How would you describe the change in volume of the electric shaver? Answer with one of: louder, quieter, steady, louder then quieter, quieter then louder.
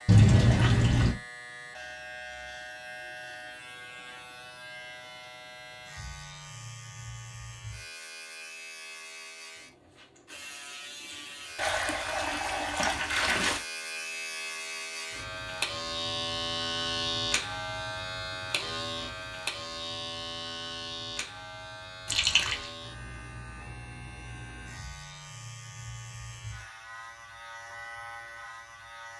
louder then quieter.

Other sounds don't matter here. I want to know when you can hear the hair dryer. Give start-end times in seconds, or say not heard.
not heard.